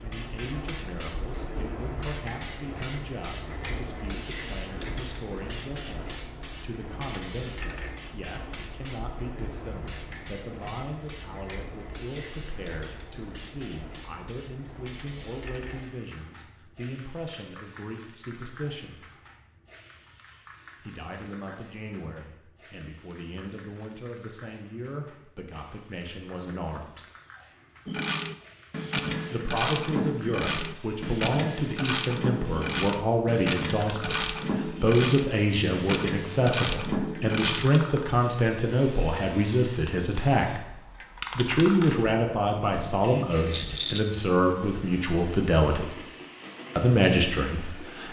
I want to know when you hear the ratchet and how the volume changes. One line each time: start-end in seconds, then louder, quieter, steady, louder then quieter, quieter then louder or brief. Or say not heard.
27.9-37.7 steady.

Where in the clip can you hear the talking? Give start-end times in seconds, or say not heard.
0.0-19.1, 20.8-27.1, 29.3-40.6, 41.4-46.0, 46.8-48.0.